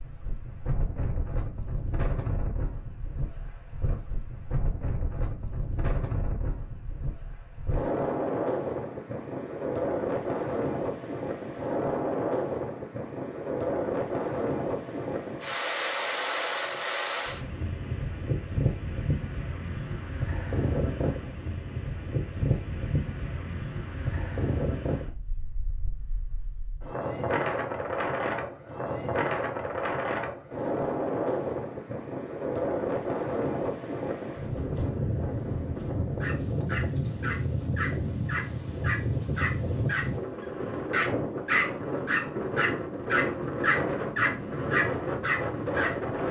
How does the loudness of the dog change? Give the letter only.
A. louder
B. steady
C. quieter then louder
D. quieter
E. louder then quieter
A.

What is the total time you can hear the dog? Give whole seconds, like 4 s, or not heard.
10 s.